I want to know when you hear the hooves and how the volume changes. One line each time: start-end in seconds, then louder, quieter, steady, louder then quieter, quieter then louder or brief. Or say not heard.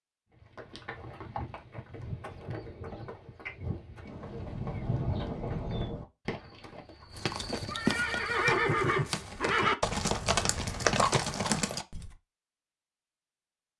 0.3-12.1 louder.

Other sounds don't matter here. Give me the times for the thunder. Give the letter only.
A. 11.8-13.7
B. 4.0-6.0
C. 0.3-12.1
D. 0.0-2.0
B.